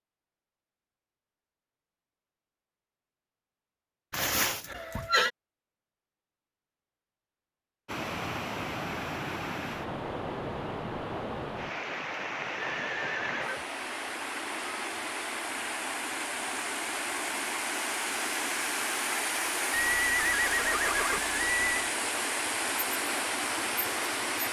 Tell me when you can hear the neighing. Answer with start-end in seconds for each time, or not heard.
4.1-5.3, 12.7-13.7, 19.7-21.9.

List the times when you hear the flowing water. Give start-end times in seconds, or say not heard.
7.8-24.4.